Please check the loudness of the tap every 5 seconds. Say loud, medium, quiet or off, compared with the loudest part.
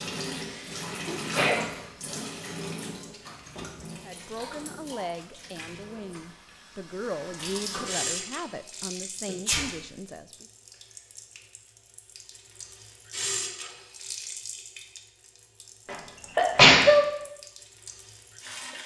loud, loud, loud, medium.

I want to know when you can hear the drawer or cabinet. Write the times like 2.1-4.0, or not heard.
not heard.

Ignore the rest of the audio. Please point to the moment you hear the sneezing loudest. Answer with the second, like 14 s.
17 s.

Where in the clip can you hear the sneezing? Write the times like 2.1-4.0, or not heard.
0.3-1.6, 9.2-9.7, 15.8-17.1.